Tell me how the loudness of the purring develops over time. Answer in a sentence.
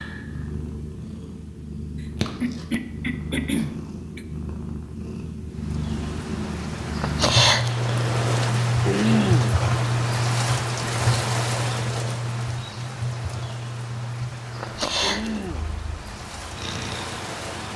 The volume of the purring goes up, then down.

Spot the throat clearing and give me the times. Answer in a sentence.
The throat clearing can be heard from 2.4 to 4.2 s, from 8.8 to 9.6 s and from 15.0 to 15.7 s.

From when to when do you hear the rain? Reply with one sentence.
You can hear the rain from 5.7 to 17.7 s.